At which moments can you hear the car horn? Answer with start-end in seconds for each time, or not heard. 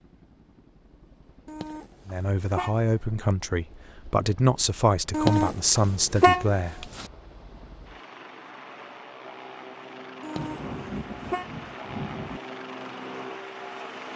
1.4-2.9, 5.1-7.0, 10.2-11.5.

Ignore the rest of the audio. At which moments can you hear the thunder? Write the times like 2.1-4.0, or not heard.
10.3-12.4.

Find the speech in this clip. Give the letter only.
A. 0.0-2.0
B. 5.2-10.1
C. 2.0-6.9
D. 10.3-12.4
C.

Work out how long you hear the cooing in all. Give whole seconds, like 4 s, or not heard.
not heard.